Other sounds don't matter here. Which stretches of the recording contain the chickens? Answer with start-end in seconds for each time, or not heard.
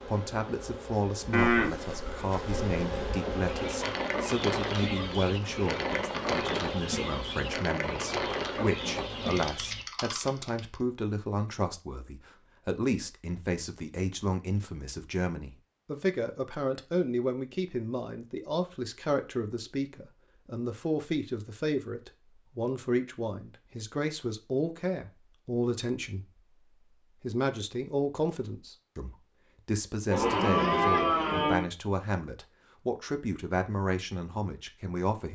3.4-10.3.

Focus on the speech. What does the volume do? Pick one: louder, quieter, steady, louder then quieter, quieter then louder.
steady.